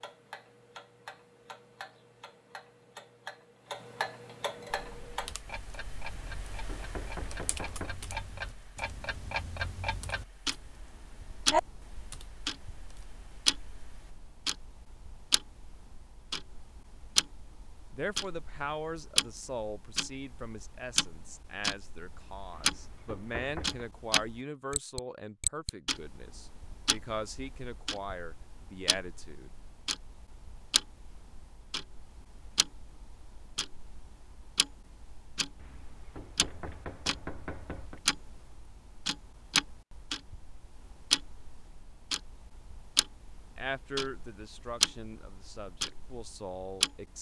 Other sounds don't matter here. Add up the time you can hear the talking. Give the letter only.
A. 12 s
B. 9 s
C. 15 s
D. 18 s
C.